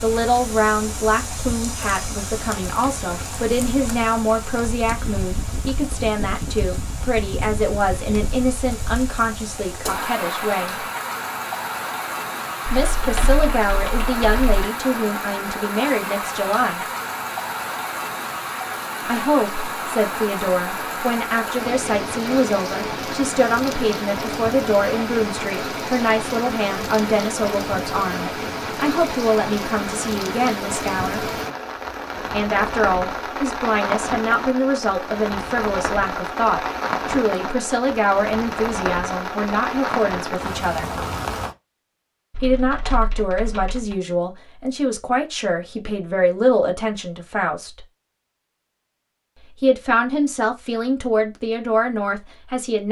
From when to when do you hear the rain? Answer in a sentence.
You can hear the rain from 0.0 to 41.5 s.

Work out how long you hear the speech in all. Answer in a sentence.
The speech can be heard for 45 seconds in total.